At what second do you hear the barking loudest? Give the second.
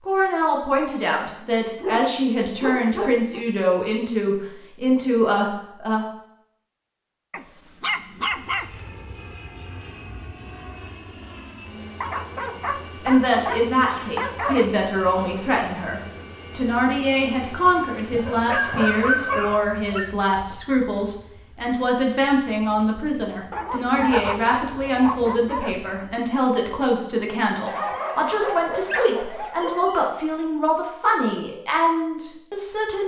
19 s.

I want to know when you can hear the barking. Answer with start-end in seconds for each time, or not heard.
1.8-3.5, 7.3-8.8, 12.0-14.7, 18.1-20.1, 23.5-25.9, 27.6-30.1.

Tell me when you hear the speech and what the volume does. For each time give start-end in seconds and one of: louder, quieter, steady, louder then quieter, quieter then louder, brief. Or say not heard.
0.1-6.0 steady
13.0-33.0 steady.